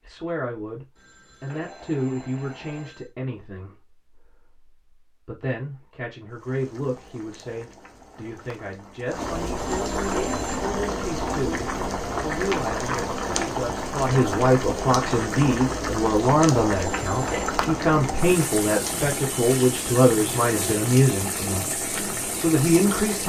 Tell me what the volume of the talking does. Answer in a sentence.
The loudness of the talking goes up.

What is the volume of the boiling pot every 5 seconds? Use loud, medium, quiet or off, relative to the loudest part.
off, medium, loud, loud, loud.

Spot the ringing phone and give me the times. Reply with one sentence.
You can hear the ringing phone from 0.9 to 3.1 s, from 9.8 to 10.7 s and from 16.9 to 17.6 s.